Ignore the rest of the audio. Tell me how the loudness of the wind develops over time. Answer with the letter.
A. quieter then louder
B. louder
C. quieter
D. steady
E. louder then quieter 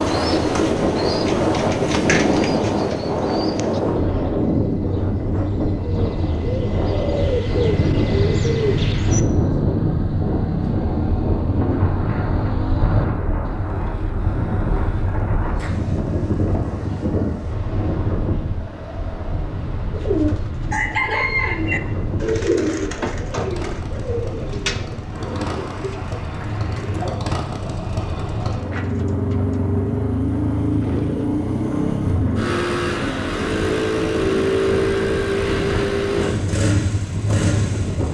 C.